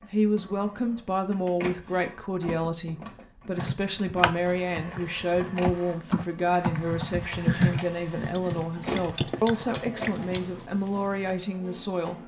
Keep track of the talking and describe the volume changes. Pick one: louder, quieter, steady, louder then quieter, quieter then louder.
steady.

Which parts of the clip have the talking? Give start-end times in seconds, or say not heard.
0.1-12.2.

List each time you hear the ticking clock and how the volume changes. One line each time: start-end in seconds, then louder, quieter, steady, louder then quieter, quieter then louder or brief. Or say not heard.
not heard.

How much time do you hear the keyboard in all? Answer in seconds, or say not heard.
8 s.